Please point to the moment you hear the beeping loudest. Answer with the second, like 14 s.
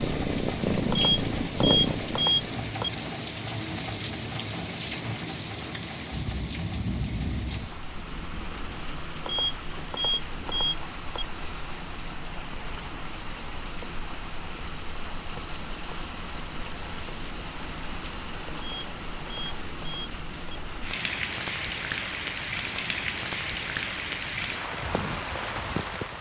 2 s.